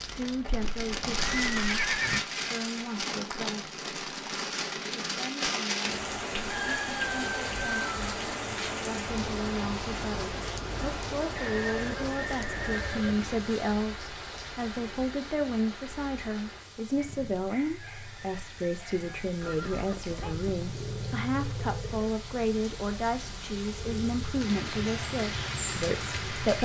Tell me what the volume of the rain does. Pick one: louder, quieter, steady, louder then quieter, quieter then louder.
quieter then louder.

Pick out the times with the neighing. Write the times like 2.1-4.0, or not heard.
0.5-2.2, 11.3-13.3, 19.4-20.4.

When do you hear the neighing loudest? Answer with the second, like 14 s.
2 s.